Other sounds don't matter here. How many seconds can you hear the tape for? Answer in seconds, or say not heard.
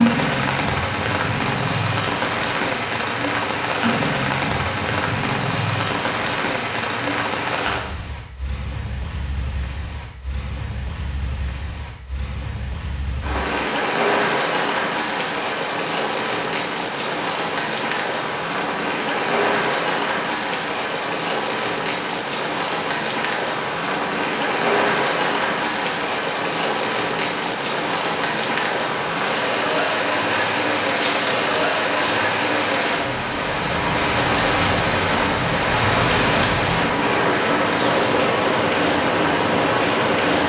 2 s.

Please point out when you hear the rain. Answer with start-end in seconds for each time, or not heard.
0.0-40.4.